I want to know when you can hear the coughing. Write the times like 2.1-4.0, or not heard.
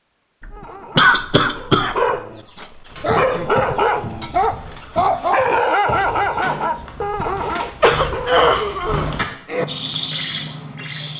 0.4-2.0, 7.7-9.7.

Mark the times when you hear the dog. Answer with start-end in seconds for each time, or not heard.
0.5-8.4.